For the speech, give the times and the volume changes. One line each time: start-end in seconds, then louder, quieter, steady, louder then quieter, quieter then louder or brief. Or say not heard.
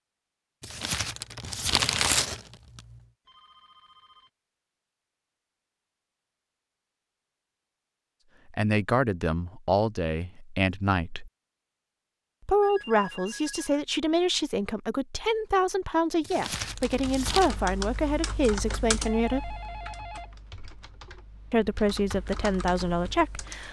8.5-11.3 brief
12.4-19.6 steady
21.5-23.6 brief.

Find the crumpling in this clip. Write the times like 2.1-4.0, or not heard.
0.6-3.0, 16.2-17.6.